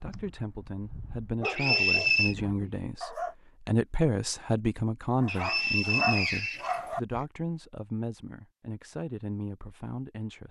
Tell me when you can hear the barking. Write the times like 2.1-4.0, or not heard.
0.0-3.4, 5.2-7.2.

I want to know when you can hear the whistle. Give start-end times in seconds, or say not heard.
1.4-2.4, 5.2-6.8.